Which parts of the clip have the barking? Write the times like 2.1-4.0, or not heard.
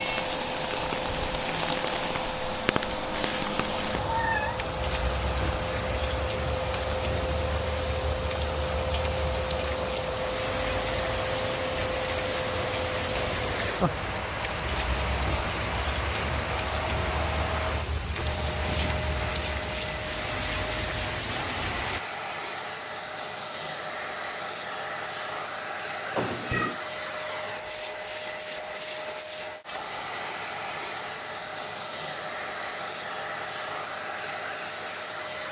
not heard.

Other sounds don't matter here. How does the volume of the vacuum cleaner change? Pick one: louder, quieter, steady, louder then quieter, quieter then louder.
steady.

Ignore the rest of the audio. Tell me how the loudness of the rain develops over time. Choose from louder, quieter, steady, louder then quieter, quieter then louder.
steady.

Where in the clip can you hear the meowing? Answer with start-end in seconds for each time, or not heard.
4.0-4.6, 18.1-19.4, 26.1-26.8.